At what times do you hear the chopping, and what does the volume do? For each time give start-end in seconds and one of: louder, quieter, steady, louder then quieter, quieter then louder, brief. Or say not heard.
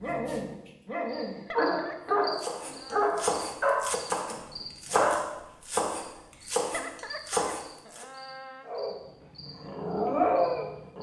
2.4-8.1 steady.